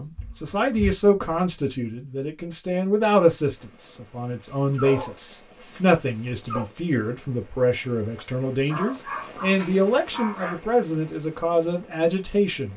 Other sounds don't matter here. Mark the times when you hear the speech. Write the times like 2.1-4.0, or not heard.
0.0-12.7.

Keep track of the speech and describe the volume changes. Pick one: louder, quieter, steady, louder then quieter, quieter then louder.
steady.